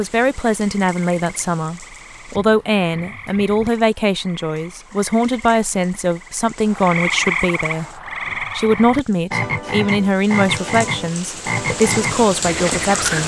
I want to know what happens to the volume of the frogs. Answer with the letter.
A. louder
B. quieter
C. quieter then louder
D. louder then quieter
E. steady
A.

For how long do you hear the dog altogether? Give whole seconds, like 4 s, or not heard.
not heard.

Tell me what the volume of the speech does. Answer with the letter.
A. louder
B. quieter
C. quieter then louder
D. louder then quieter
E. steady
E.